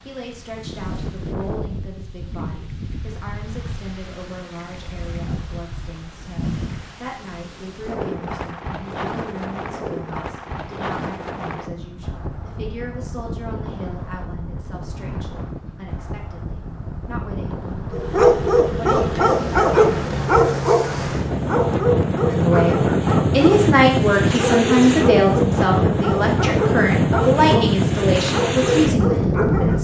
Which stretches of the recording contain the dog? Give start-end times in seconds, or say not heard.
17.9-29.7.